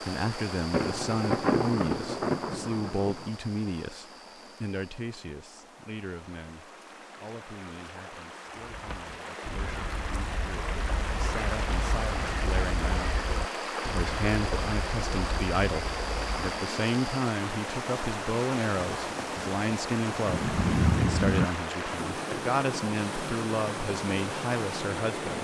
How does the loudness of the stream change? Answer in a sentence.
The volume of the stream goes up.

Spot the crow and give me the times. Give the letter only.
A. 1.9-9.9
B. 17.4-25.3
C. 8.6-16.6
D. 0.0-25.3
C.